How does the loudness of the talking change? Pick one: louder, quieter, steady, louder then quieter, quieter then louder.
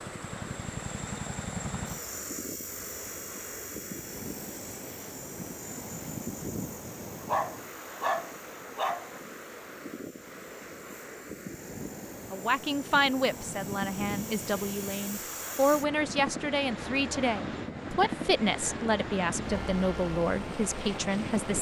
steady.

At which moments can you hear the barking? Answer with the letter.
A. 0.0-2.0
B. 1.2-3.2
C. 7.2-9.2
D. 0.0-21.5
C.